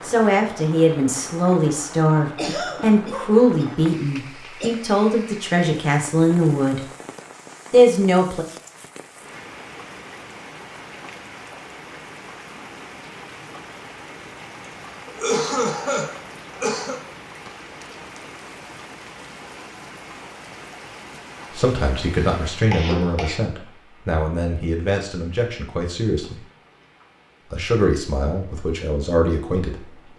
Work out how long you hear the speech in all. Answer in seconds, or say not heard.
15 s.